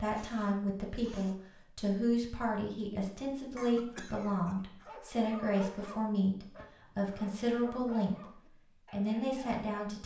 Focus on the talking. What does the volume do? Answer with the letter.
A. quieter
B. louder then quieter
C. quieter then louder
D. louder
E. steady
E.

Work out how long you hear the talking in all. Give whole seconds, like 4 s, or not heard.
10 s.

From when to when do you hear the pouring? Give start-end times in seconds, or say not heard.
not heard.